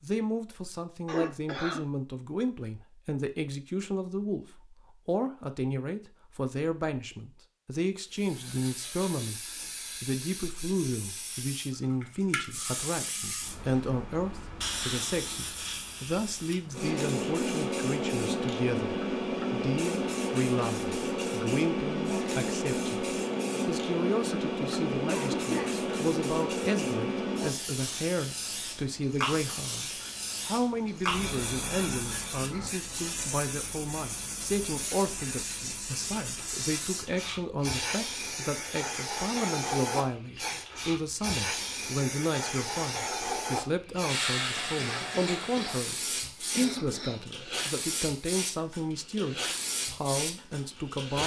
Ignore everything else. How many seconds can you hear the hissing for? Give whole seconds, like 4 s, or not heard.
43 s.